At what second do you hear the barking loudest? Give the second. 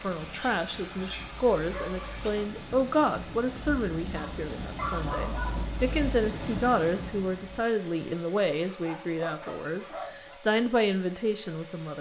5 s.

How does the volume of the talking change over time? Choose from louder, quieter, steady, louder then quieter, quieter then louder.
steady.